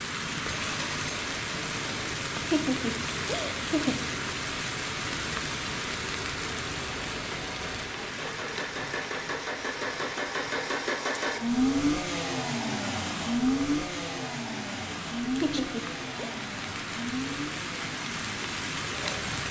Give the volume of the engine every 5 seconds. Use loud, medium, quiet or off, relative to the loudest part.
quiet, medium, loud, medium.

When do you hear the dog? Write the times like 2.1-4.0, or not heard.
not heard.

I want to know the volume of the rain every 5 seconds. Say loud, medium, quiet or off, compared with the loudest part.
loud, loud, medium, loud.